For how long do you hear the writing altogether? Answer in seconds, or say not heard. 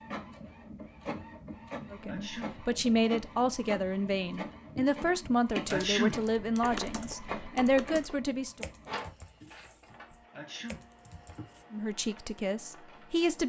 not heard.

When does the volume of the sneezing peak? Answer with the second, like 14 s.
6 s.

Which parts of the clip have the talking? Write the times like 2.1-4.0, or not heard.
1.9-8.7, 11.7-13.4.